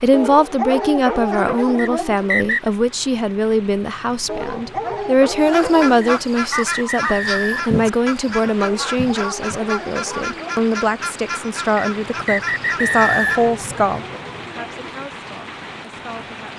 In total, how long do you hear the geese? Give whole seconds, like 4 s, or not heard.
8 s.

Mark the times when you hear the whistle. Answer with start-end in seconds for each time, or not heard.
1.8-2.7, 6.0-7.7, 11.8-13.5.